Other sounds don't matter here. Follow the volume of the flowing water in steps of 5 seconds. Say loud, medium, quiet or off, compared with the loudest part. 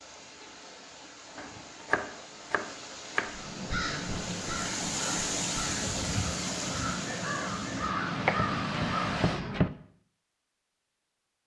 medium, loud, off.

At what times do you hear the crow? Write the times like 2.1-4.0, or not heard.
3.2-9.8.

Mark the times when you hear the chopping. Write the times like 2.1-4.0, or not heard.
1.4-3.4, 8.2-9.7.